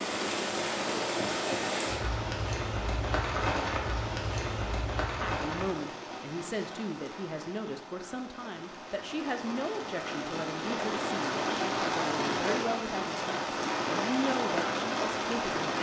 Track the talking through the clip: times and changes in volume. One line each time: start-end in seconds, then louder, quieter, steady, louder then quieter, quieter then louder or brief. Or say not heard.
5.1-15.7 steady.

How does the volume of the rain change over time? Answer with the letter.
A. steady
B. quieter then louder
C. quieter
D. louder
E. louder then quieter
B.